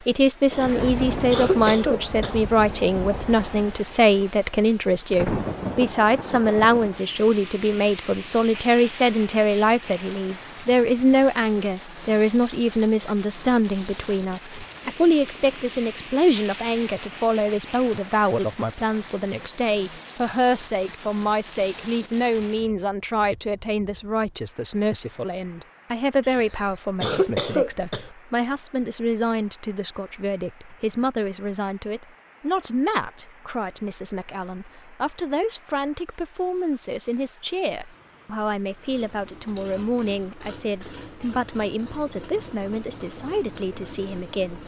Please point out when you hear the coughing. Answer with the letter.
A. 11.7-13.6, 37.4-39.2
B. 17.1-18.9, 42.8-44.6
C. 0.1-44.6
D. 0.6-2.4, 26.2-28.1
D.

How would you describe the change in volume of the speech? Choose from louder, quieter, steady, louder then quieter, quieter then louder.
quieter.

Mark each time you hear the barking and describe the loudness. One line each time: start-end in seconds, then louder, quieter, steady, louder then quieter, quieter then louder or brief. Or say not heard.
not heard.